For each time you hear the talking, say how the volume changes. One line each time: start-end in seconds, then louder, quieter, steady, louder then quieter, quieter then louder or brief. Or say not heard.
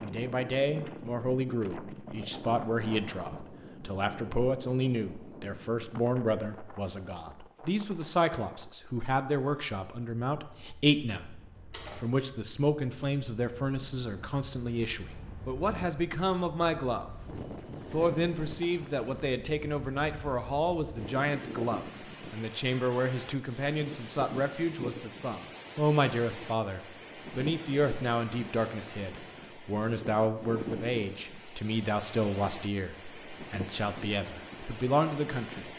0.0-17.1 steady
17.9-35.7 steady.